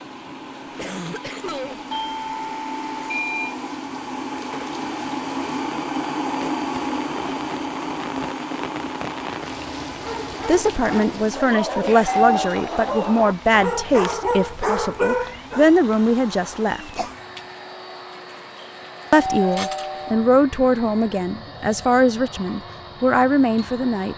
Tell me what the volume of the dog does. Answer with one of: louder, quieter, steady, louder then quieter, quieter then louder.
louder.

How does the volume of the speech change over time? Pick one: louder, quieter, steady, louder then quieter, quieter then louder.
steady.